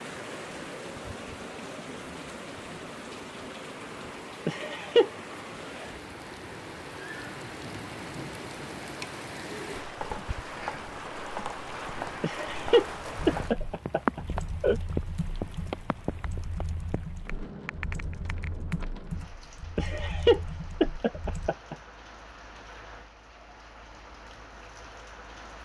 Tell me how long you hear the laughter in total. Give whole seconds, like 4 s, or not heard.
5 s.